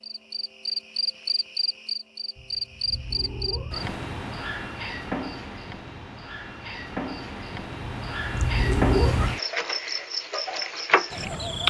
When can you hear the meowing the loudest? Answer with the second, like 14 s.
9 s.